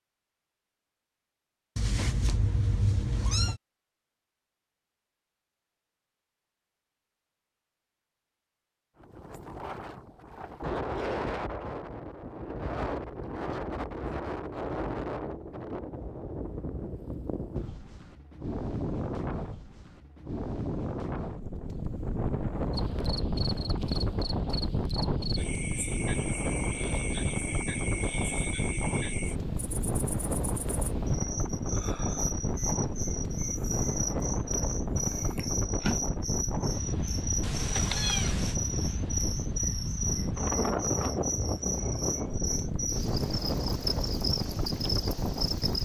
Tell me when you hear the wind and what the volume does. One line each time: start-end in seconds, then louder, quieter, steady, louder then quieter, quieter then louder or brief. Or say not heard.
9.0-45.7 steady.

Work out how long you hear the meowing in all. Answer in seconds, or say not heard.
3 s.